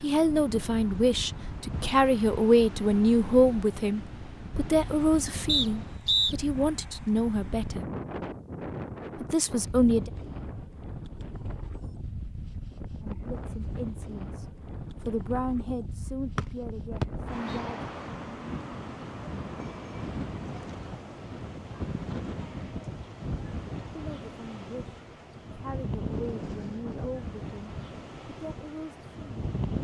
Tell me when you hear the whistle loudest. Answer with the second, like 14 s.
6 s.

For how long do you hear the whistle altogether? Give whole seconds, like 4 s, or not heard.
2 s.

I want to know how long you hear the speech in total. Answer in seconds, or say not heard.
19 s.